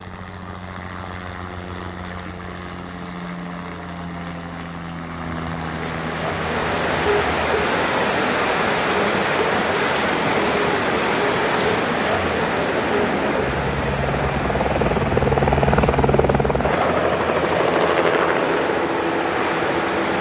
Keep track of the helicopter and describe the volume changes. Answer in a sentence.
The loudness of the helicopter goes up.